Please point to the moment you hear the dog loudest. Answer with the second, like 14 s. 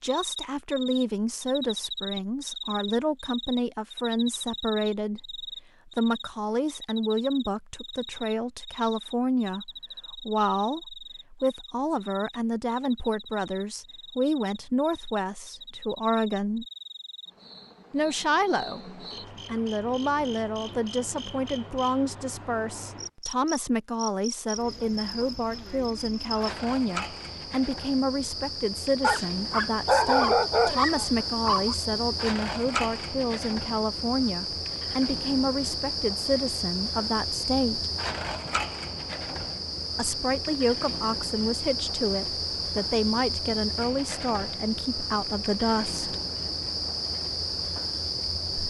30 s.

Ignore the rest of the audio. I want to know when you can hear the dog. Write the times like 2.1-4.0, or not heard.
29.0-31.8.